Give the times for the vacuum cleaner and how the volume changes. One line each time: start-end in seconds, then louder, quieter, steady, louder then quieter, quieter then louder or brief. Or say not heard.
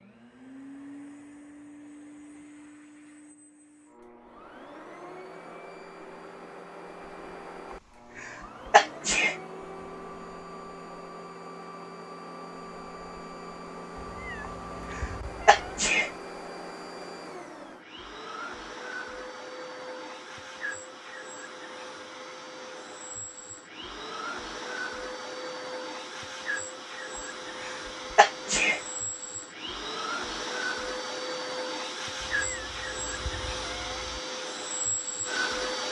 0.0-35.8 louder.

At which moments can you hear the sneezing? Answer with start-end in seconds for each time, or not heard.
8.2-9.3, 14.9-16.1, 27.6-28.8.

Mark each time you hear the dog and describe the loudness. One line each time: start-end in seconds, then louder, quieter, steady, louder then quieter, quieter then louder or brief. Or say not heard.
not heard.